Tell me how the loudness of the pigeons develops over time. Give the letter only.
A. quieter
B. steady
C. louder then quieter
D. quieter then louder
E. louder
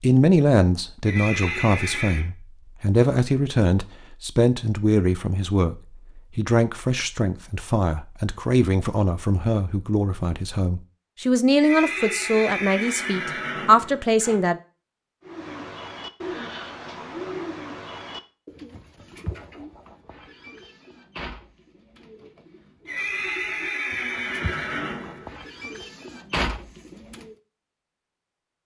D.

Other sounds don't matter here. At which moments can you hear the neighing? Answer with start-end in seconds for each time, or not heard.
1.1-2.2, 11.6-14.3, 22.9-25.3.